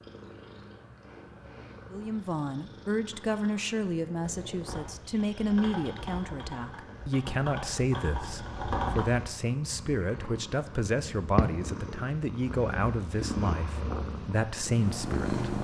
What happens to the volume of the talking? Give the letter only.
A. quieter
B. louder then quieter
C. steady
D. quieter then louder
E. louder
C.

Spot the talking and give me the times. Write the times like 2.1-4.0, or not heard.
1.9-15.4.